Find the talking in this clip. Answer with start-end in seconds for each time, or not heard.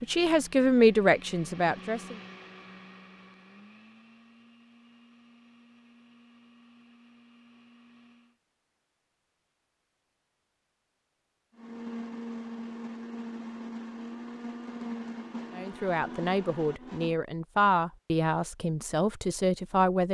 0.0-2.1, 15.6-20.0.